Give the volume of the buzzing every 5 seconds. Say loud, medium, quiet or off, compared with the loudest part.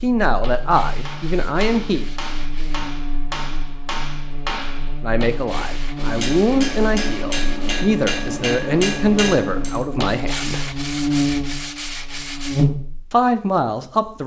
quiet, medium, loud.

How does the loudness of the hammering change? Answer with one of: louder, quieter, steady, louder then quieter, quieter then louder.
louder.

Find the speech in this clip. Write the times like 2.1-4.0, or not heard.
0.0-2.0, 5.0-10.7, 13.1-14.2.